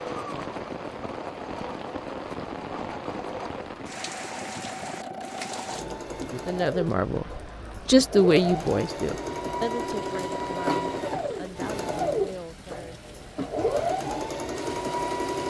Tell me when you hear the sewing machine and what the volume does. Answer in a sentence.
You can hear the sewing machine from 0.0 to 15.4 s, getting louder.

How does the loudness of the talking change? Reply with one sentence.
The loudness of the talking goes up, then down.